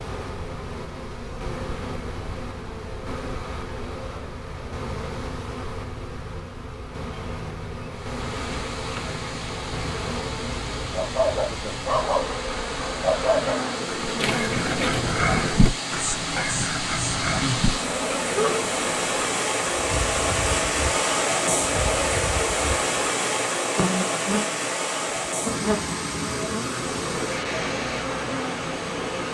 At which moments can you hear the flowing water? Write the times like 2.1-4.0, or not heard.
7.9-29.3.